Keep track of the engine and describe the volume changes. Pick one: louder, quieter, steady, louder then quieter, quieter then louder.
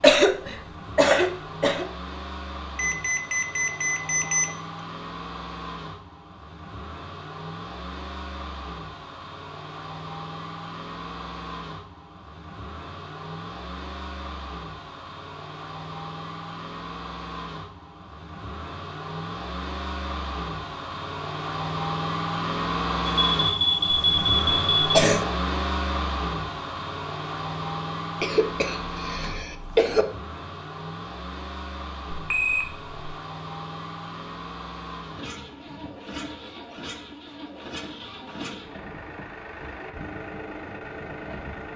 louder then quieter.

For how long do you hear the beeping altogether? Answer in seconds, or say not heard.
4 s.